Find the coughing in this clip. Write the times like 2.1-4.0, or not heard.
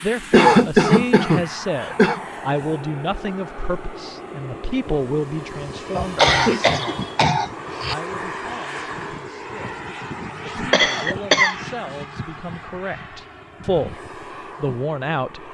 0.3-2.2, 6.0-8.0, 10.7-11.6.